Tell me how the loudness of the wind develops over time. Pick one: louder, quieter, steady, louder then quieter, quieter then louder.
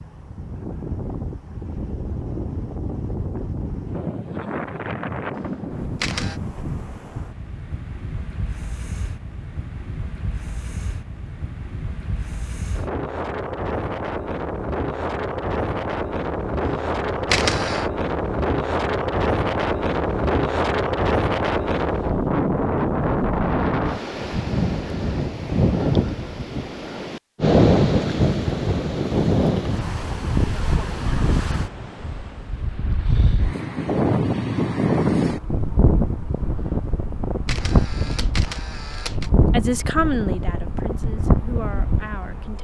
louder.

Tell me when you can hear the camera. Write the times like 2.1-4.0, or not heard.
5.3-6.4, 16.6-17.9, 37.5-39.3.